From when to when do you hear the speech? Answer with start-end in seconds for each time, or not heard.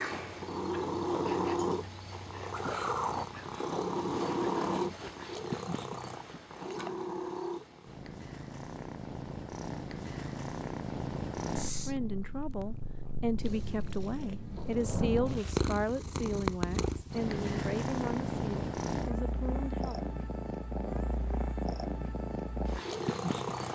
11.7-20.1.